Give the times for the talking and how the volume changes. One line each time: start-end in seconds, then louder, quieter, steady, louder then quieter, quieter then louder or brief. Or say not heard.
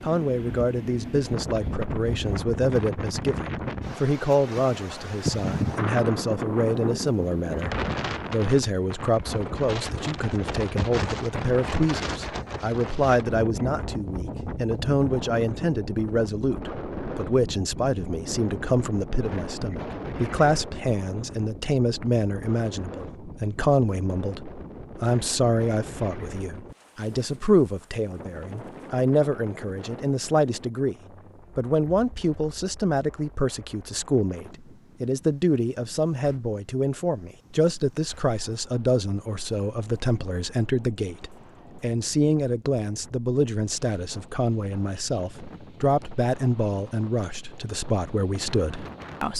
0.0-30.9 steady
31.6-49.3 steady.